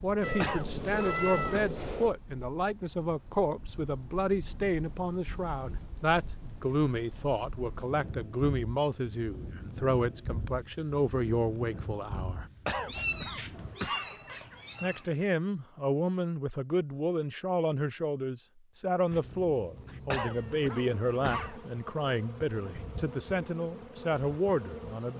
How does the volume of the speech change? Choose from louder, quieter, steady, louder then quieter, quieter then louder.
steady.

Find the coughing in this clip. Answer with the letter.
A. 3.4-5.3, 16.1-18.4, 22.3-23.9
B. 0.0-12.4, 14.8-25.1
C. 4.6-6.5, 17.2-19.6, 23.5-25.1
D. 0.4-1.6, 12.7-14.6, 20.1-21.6
D.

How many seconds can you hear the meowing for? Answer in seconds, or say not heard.
6 s.